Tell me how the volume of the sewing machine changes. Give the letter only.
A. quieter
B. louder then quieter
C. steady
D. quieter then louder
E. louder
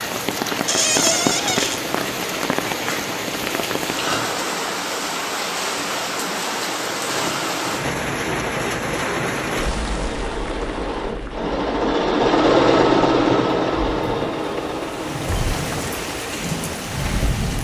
B.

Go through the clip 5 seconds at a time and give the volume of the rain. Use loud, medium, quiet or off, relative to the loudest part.
loud, loud, medium, loud.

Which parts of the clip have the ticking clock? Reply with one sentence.
You can't hear the ticking clock here.